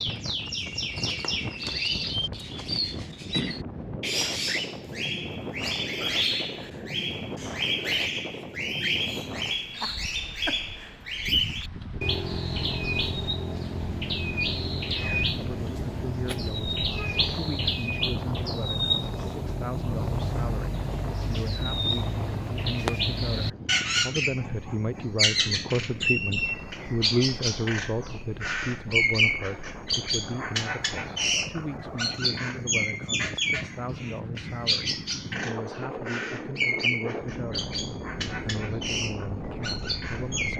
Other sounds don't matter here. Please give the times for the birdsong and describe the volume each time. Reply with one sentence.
You can hear the birdsong from 0.0 to 40.5 s, at a steady volume.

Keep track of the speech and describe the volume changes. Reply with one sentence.
The loudness of the speech goes up, then down.